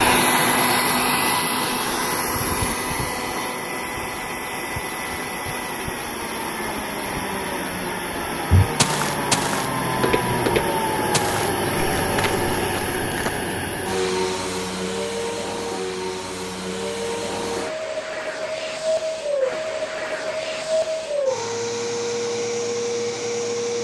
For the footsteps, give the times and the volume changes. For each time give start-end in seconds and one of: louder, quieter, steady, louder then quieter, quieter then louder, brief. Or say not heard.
8.5-13.5 quieter.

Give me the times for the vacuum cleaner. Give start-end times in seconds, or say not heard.
0.0-23.8.